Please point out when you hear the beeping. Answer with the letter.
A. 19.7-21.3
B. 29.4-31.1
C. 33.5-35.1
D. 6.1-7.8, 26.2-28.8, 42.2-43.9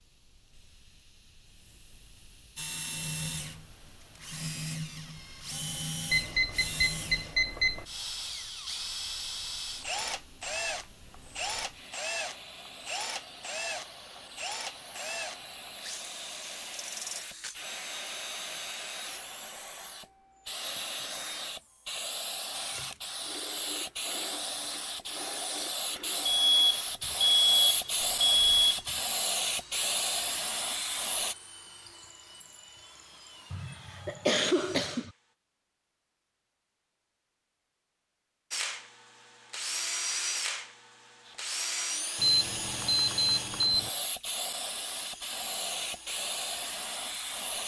D.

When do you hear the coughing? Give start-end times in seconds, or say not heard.
33.5-35.1.